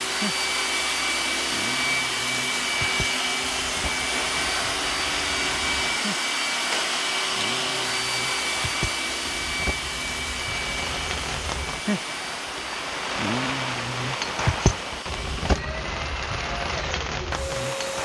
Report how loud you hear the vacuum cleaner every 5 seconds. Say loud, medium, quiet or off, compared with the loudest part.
loud, loud, medium, medium.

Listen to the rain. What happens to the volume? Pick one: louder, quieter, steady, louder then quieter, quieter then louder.
louder.